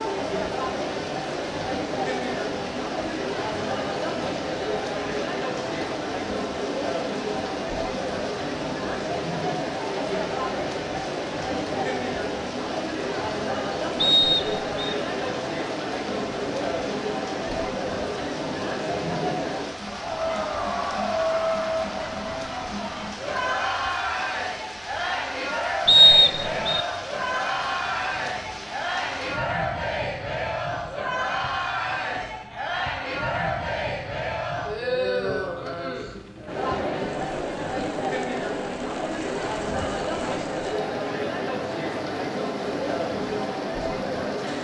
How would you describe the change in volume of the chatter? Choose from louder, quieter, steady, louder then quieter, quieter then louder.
steady.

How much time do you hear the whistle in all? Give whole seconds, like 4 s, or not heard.
2 s.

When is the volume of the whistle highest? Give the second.
26 s.